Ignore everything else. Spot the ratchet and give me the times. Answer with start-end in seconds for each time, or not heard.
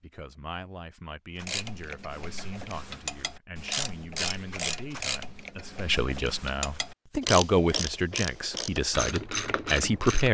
1.4-10.2.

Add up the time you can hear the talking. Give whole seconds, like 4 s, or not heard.
10 s.